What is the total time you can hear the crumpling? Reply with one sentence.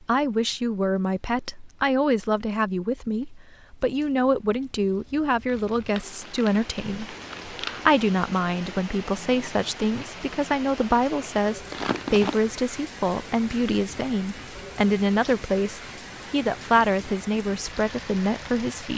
You can hear the crumpling for 3 seconds altogether.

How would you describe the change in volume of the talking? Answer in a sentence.
The loudness of the talking stays about the same.